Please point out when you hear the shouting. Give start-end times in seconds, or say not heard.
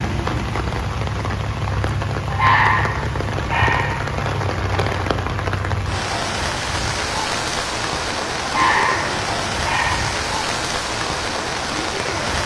not heard.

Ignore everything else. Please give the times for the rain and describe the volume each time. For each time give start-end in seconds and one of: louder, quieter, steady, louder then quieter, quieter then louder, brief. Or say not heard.
0.0-12.4 steady.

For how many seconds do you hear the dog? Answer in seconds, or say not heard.
4 s.